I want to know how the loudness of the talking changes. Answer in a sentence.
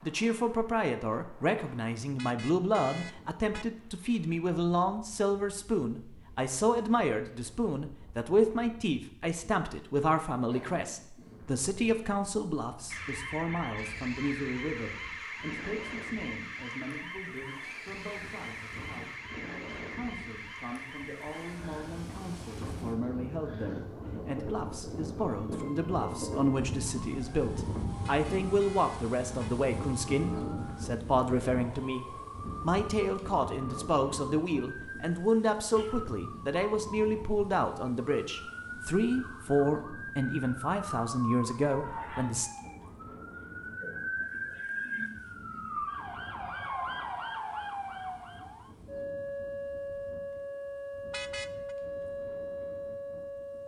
The volume of the talking goes down, then up.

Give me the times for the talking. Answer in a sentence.
You can hear the talking from 0.0 to 42.5 s.